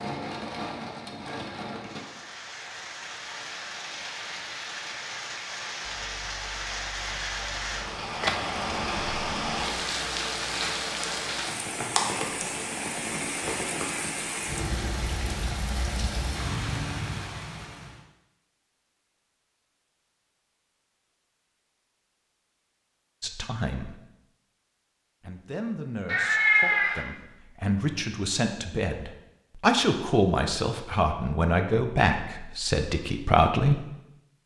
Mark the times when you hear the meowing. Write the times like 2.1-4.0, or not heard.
8.2-8.9, 26.1-27.1.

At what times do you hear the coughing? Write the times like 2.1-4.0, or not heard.
not heard.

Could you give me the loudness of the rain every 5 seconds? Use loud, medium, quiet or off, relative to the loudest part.
medium, loud, loud, loud, off, off, off.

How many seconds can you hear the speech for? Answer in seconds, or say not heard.
9 s.